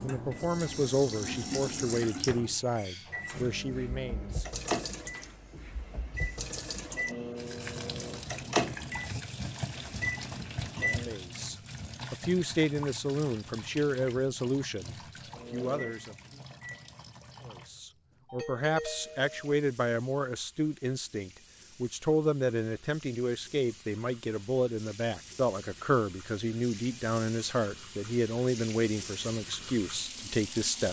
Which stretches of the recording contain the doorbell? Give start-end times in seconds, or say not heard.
18.2-19.6.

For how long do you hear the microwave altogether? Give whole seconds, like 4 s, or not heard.
13 s.